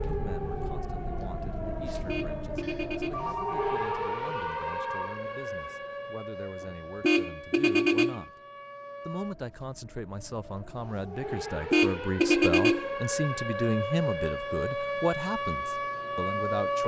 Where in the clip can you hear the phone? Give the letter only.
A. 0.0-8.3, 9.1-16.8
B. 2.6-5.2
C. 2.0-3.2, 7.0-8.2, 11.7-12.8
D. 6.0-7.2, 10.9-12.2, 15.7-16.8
B.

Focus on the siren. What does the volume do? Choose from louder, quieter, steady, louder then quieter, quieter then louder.
quieter then louder.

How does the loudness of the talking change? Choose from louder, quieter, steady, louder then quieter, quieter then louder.
louder.